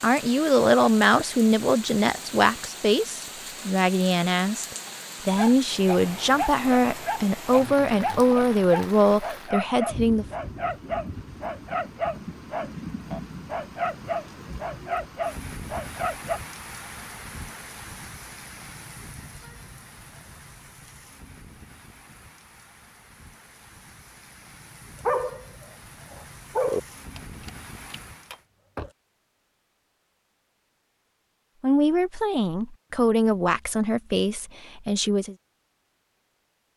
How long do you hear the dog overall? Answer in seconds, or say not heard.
15 s.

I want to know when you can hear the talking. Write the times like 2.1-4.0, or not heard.
0.0-10.2, 31.6-35.4.